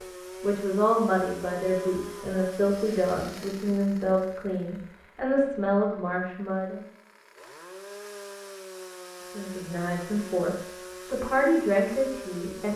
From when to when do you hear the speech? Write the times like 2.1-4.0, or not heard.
0.0-6.8, 9.3-12.7.